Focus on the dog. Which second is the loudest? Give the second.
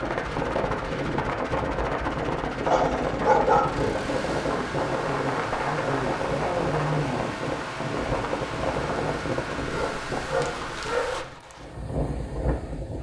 3 s.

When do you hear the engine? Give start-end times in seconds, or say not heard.
0.0-11.2.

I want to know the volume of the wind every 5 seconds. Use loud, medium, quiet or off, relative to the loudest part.
loud, loud, medium.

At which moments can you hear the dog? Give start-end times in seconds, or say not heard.
2.6-4.0, 9.7-11.3.